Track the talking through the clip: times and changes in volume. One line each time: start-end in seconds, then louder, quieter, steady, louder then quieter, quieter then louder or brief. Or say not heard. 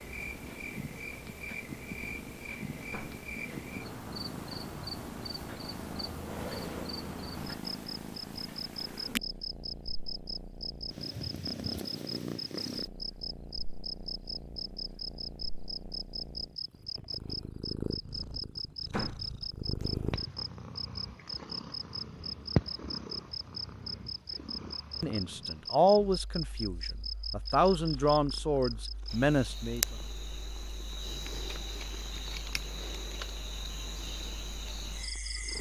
25.0-29.9 quieter then louder.